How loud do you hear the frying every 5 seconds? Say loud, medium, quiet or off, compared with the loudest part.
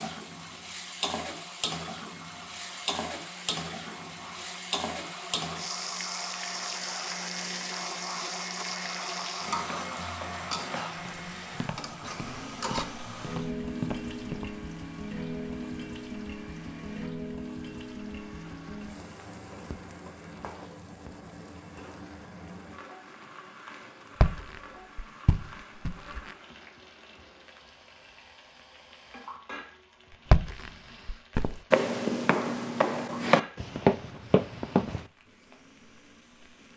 loud, loud, loud, loud, medium, quiet, quiet, quiet.